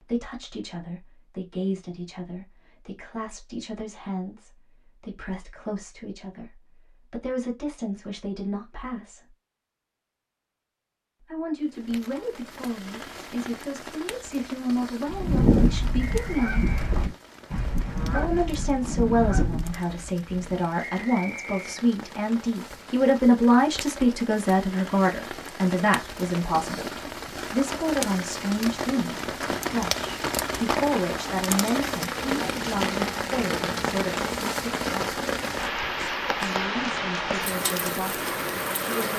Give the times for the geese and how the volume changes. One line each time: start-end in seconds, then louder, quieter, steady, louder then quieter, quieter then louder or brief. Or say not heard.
15.1-20.6 quieter.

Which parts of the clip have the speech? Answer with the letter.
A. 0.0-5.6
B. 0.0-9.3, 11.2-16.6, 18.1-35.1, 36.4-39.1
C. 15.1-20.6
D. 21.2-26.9
B.